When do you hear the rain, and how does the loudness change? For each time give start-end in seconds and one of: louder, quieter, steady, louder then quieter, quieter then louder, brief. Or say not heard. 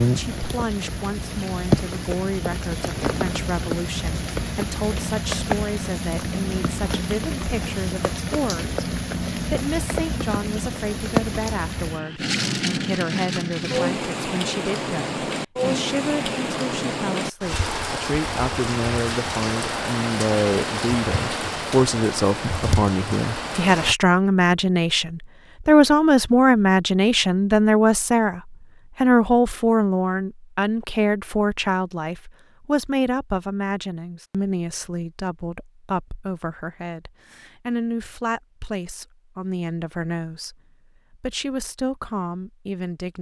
0.0-23.9 steady.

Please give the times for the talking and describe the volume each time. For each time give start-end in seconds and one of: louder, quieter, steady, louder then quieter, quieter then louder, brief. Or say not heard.
0.1-43.1 louder then quieter.